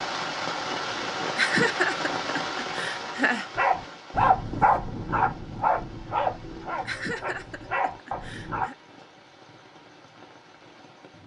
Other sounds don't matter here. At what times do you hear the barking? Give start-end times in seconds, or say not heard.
3.5-8.7.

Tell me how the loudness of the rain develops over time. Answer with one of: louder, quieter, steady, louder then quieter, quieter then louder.
quieter.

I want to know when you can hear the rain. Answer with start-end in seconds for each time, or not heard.
0.0-11.2.